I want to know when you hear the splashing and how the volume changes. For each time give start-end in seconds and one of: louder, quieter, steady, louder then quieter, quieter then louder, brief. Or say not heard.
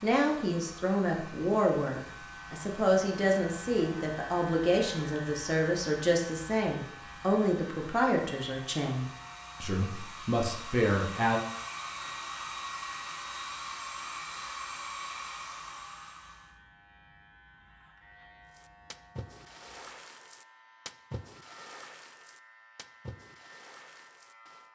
18.5-24.7 quieter.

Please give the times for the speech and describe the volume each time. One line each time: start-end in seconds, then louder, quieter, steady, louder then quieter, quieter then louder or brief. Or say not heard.
0.0-11.4 steady.